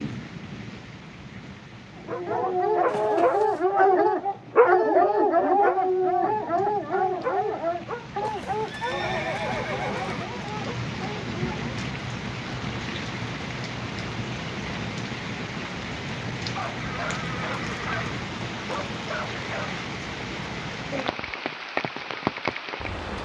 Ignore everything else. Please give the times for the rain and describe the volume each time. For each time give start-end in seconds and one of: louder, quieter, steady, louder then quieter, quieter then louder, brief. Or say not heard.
0.0-23.2 louder.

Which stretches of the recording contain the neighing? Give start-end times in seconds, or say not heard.
2.9-3.6, 8.2-10.2, 16.8-18.0.